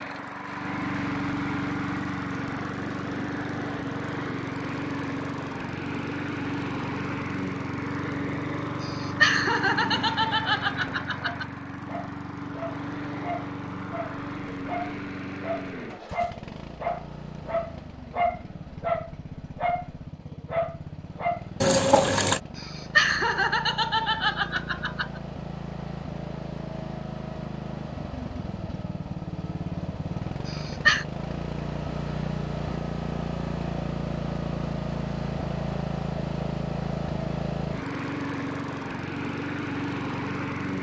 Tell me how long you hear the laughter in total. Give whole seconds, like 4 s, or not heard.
6 s.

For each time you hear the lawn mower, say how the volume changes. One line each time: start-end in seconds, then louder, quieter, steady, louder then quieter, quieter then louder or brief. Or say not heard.
0.0-40.7 quieter then louder.